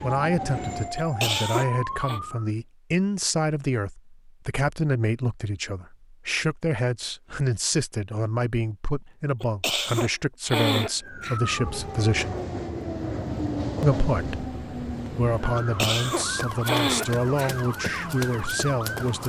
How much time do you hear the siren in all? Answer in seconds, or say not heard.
11 s.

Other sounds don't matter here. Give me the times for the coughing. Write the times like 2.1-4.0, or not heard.
0.9-2.2, 9.4-11.4, 15.8-17.6.